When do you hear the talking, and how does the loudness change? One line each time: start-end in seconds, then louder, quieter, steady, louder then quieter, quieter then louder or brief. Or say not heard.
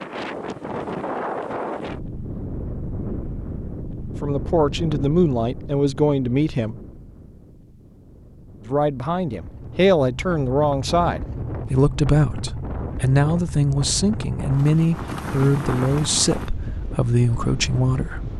4.2-6.8 brief
8.7-18.3 steady.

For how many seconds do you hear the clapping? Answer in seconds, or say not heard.
not heard.